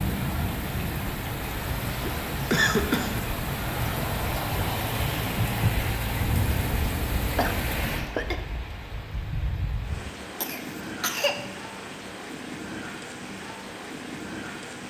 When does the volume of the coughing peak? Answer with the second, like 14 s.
3 s.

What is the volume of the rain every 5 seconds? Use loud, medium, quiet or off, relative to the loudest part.
loud, loud, medium.